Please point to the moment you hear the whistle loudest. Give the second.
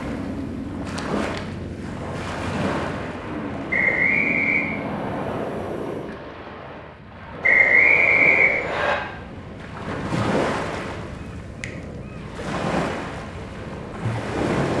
8 s.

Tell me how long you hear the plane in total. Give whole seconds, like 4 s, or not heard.
6 s.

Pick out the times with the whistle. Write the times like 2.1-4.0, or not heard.
3.7-4.7, 7.4-8.9.